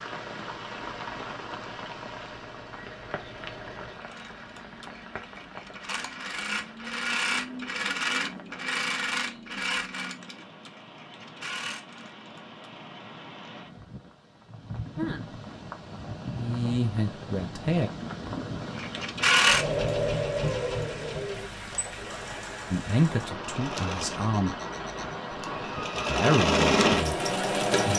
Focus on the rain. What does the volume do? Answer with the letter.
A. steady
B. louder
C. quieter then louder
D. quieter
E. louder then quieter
C.